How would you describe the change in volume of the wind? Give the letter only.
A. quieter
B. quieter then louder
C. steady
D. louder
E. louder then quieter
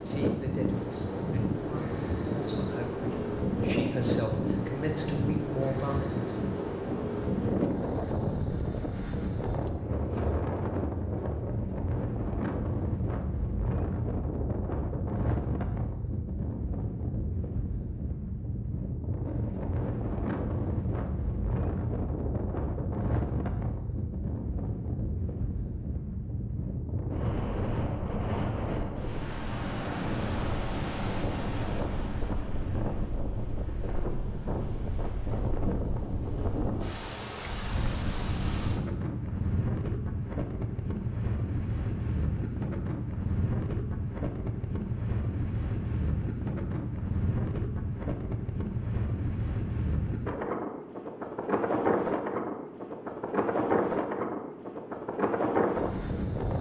C.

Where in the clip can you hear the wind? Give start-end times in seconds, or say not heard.
0.0-56.5.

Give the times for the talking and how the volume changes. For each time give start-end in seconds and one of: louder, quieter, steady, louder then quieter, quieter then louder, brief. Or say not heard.
0.0-6.4 louder.